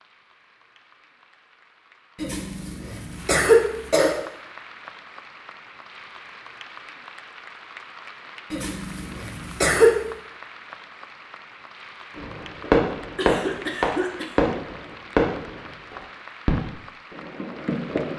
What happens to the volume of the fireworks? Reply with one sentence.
The volume of the fireworks goes down.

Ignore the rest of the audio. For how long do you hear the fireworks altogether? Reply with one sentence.
You can hear the fireworks for 6 seconds altogether.